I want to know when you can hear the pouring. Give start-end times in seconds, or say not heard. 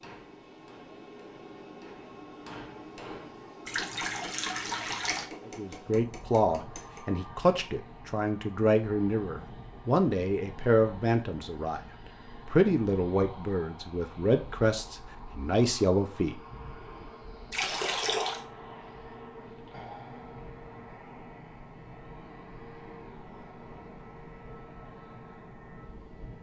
3.6-5.2, 17.5-18.4.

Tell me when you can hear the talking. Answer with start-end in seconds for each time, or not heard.
5.5-11.8, 12.4-16.4.